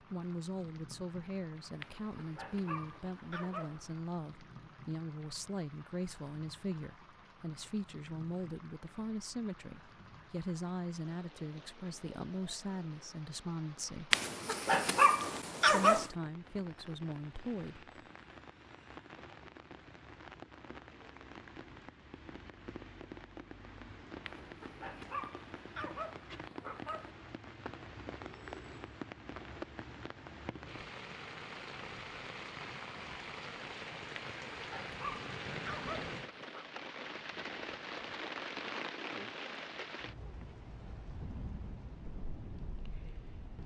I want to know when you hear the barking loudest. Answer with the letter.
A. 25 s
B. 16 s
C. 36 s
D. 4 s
B.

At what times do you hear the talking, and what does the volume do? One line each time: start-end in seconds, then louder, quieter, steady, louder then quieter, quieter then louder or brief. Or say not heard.
0.1-14.2 steady
15.7-17.9 brief.